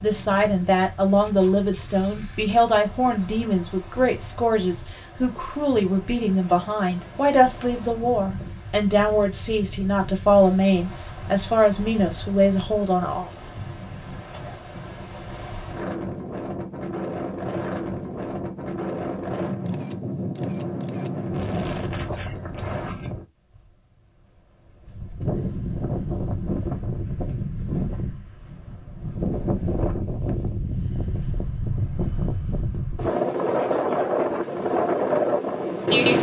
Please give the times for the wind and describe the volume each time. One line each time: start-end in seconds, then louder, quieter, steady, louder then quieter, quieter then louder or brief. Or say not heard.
0.0-36.1 louder.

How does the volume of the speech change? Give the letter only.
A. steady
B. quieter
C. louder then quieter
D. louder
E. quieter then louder
A.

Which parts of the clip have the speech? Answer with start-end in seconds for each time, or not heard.
0.0-13.3.